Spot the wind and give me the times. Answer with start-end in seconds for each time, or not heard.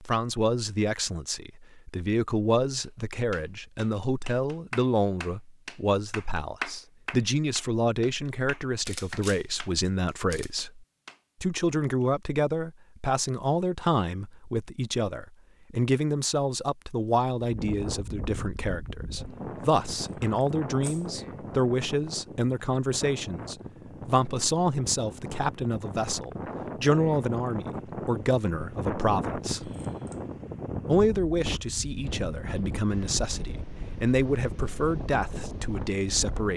17.4-36.5.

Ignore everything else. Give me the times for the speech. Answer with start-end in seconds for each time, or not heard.
0.0-29.7, 30.9-36.5.